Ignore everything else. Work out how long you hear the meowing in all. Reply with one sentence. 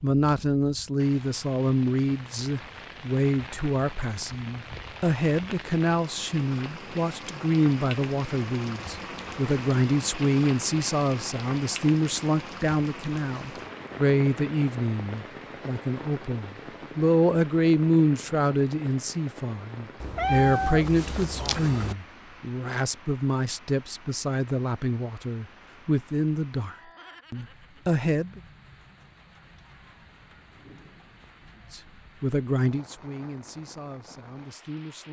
You can hear the meowing for 2 seconds altogether.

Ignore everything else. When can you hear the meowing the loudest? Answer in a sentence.
The loudest moment of the meowing is at 20 seconds.